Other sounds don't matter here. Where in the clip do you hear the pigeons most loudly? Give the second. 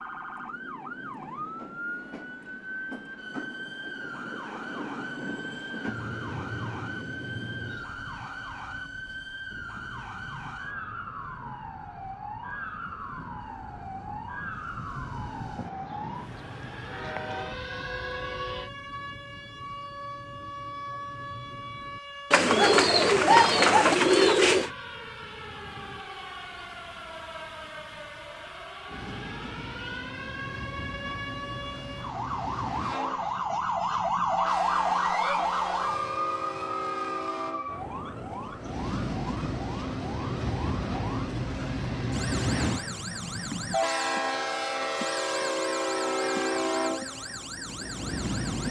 23 s.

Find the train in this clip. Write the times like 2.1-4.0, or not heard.
0.0-18.7, 28.9-48.6.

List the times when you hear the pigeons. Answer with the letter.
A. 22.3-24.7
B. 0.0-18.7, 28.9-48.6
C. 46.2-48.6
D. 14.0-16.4
A.